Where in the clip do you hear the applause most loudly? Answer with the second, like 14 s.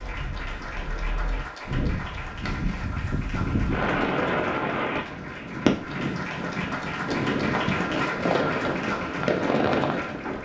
8 s.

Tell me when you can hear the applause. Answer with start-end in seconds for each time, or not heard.
0.0-10.4.